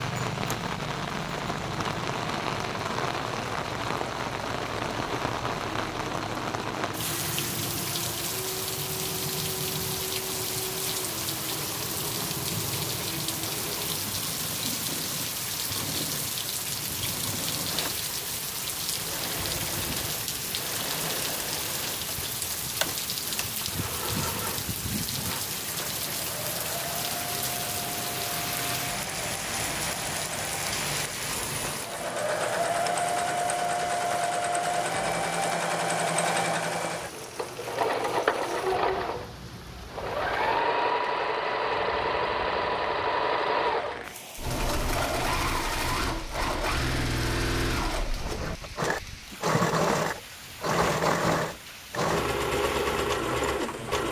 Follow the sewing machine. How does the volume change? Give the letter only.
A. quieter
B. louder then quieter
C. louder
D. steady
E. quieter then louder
C.